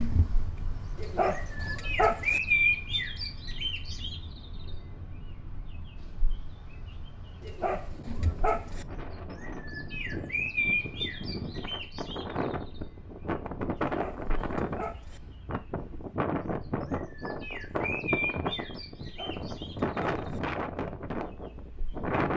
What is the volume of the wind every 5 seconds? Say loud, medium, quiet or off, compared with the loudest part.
quiet, quiet, loud, loud, loud.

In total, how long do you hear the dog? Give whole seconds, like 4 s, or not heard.
6 s.